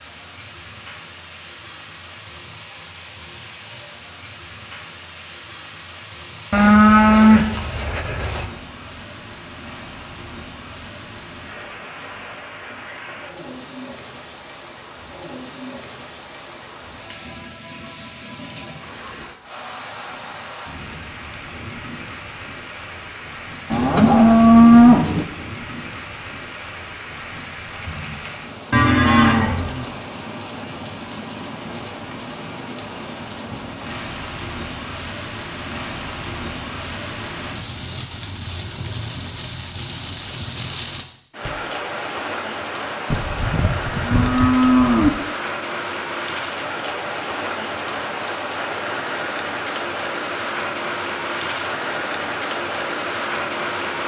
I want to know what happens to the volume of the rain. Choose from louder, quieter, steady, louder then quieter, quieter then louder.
louder.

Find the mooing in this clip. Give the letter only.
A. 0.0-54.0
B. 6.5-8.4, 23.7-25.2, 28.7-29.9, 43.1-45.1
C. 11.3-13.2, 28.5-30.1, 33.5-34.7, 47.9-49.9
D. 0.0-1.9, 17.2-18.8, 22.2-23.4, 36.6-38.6
B.